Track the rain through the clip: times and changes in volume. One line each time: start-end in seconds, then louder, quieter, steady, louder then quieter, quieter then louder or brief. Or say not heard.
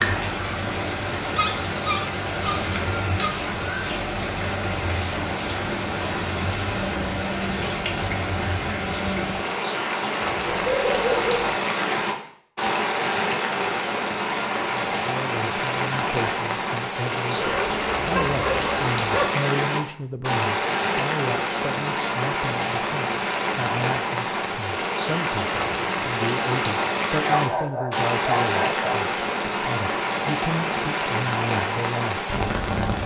0.0-33.0 steady.